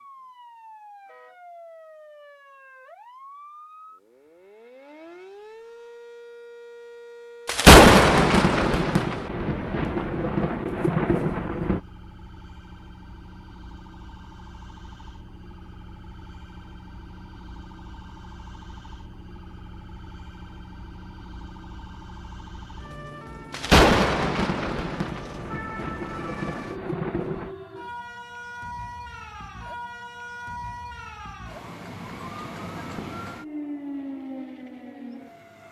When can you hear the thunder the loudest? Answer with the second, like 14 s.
8 s.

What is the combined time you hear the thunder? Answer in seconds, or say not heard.
8 s.